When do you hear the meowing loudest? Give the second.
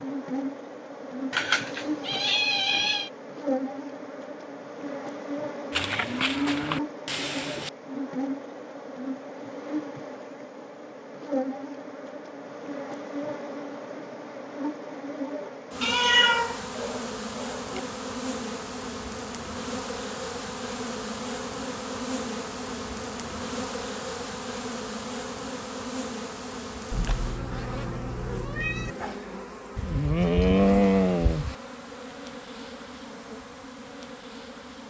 16 s.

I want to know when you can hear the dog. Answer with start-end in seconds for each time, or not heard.
not heard.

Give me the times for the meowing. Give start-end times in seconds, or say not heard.
1.3-3.1, 15.8-17.8, 26.9-28.9.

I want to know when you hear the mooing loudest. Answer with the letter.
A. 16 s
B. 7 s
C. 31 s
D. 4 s
C.